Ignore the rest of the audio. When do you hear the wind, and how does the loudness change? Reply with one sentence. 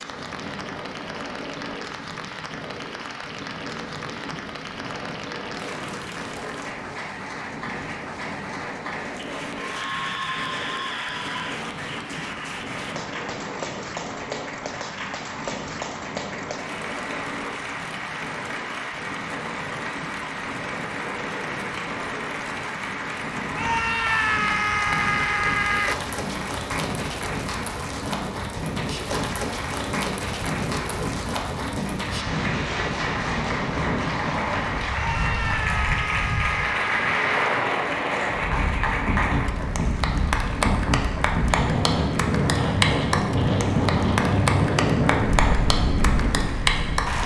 The wind can be heard from 0.0 to 47.2 s, getting louder.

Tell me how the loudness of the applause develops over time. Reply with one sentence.
The volume of the applause goes up.